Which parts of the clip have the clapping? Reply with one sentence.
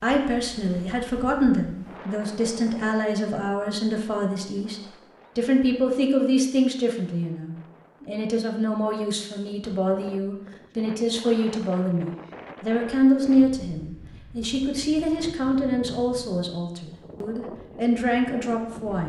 The clapping can't be heard in this clip.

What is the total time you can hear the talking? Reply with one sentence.
The talking can be heard for 19 seconds in total.